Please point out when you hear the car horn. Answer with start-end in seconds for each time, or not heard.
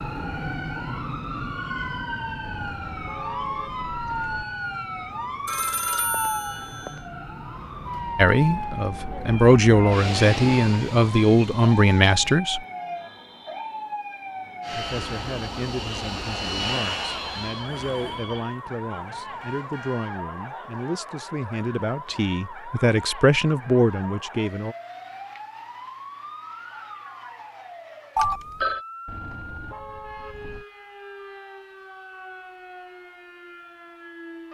2.4-4.5, 19.4-20.1, 29.1-30.6.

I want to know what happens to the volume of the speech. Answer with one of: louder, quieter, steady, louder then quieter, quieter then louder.
quieter then louder.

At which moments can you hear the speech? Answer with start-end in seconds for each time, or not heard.
8.2-12.6, 14.7-24.8.